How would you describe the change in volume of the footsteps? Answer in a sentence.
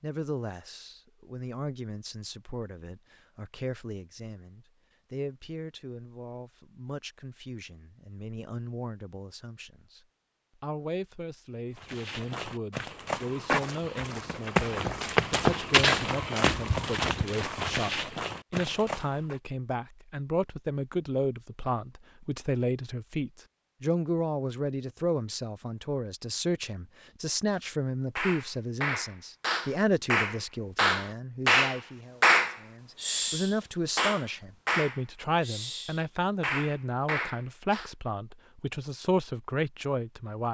The loudness of the footsteps goes up, then down.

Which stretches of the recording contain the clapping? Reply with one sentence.
The clapping can be heard from 28.1 to 37.9 s.